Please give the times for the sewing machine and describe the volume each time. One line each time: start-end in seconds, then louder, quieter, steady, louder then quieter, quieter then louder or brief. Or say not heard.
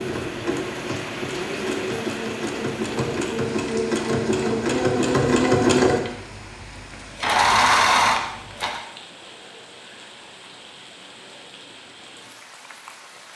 0.0-8.8 louder.